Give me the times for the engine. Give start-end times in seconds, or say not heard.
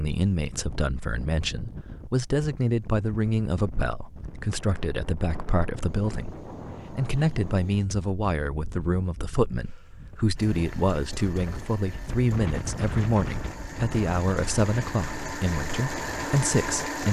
10.3-17.0.